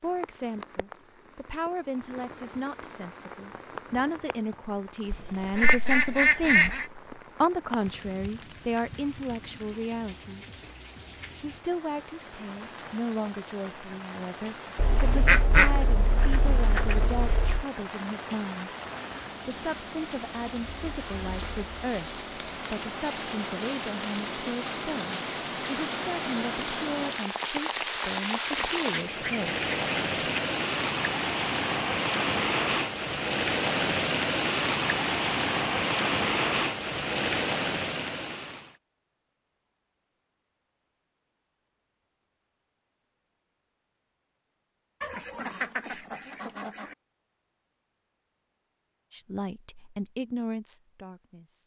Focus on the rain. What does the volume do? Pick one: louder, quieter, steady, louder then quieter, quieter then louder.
louder.